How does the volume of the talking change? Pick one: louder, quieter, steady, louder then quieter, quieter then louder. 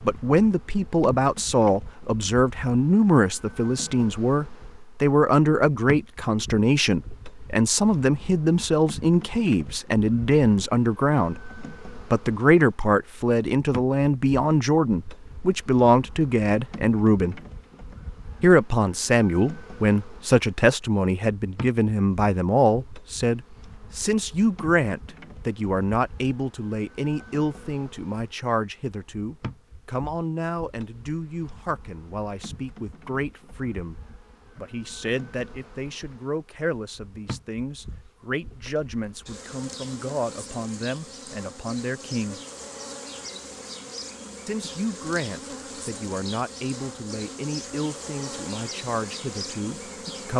quieter.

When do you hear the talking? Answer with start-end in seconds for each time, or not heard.
0.1-17.4, 18.4-34.0, 34.5-42.4, 44.5-50.3.